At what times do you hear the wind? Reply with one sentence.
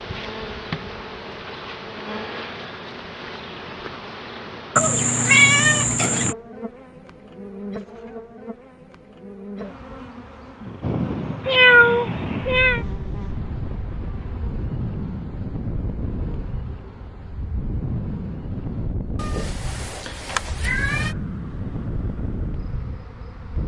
You can hear the wind from 10.8 to 23.6 s.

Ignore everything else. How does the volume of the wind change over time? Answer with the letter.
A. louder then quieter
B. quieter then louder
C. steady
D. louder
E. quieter
C.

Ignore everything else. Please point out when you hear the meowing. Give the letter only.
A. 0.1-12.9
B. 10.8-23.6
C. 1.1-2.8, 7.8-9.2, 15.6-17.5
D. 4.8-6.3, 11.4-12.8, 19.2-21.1
D.